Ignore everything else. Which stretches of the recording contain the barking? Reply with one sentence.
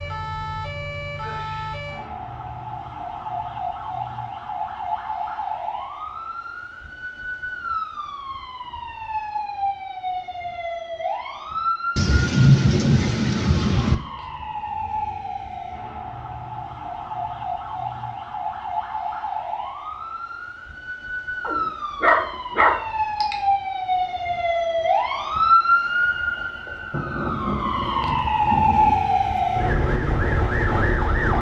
You can hear the barking from 21.4 to 23.4 s.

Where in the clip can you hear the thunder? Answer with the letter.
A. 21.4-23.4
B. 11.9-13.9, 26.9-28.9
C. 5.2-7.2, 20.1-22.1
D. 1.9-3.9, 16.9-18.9
B.